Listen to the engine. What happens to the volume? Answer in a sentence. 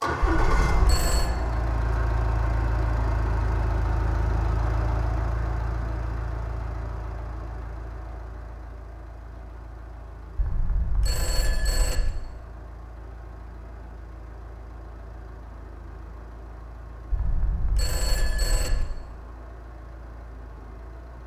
The loudness of the engine goes down.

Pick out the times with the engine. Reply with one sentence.
You can hear the engine from 0.0 to 21.2 s.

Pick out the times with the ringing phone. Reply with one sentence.
The ringing phone can be heard from 0.2 to 1.3 s, from 10.3 to 12.1 s and from 17.1 to 18.9 s.